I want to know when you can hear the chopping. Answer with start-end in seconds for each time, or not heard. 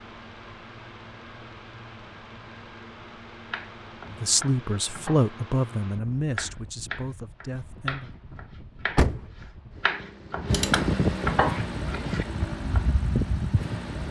3.5-5.3, 6.3-12.8.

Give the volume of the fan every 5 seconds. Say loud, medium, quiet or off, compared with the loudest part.
quiet, quiet, loud.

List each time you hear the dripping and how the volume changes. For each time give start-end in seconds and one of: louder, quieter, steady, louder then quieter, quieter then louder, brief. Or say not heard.
not heard.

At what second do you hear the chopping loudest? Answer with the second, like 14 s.
11 s.